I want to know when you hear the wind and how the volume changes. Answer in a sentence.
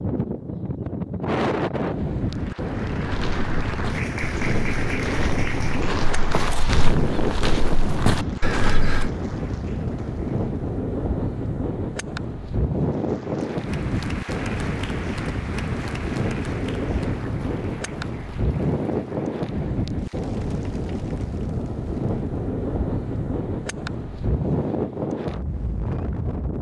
You can hear the wind from 0.0 to 26.5 s, at a steady volume.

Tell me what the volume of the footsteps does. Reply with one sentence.
The volume of the footsteps goes up.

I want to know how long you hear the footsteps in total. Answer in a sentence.
You can hear the footsteps for 6 seconds altogether.